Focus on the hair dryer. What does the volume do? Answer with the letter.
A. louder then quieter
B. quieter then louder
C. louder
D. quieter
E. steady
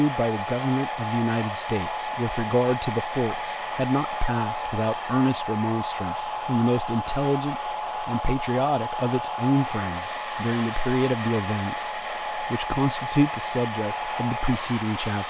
E.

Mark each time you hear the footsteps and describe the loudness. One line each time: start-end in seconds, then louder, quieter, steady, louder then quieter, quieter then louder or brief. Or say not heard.
not heard.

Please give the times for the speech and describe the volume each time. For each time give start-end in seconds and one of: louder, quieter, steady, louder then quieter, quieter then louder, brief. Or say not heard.
0.0-15.2 steady.